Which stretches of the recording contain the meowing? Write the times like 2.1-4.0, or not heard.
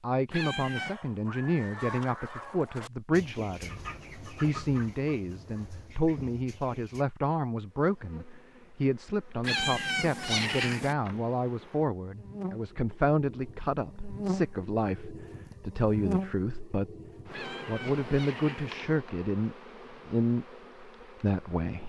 0.3-0.9, 9.4-10.9, 17.3-18.8.